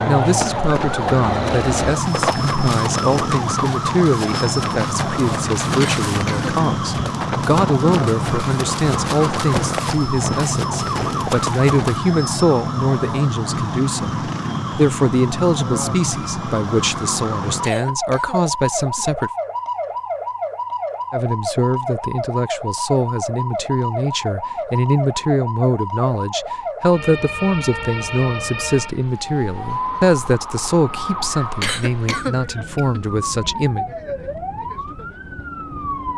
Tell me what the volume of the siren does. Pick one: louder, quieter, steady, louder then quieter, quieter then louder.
quieter.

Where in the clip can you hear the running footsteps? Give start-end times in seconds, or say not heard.
0.2-12.0.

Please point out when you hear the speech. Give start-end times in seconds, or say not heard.
0.1-19.3, 21.1-33.9.